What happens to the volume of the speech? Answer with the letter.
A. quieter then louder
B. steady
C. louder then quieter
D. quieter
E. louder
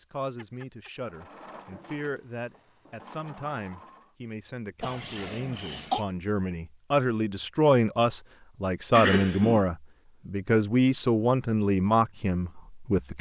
E.